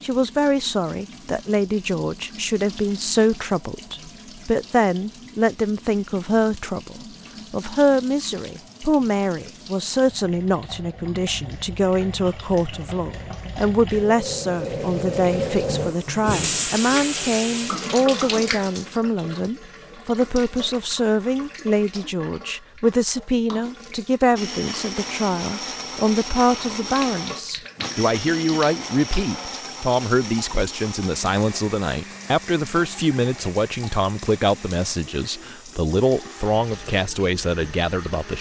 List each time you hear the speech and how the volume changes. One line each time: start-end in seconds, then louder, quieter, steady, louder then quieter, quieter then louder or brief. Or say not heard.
0.0-38.3 steady.